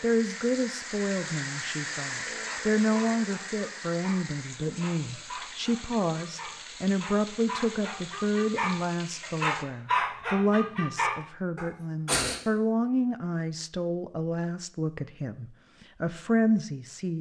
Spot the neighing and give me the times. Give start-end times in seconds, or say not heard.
not heard.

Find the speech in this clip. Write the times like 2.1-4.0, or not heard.
0.0-17.1.